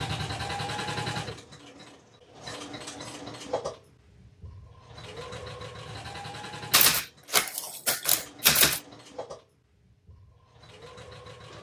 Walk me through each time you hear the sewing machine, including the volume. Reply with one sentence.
You can hear the sewing machine from 0.0 to 11.5 s, getting quieter.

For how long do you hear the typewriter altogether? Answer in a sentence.
You can hear the typewriter for 2 seconds altogether.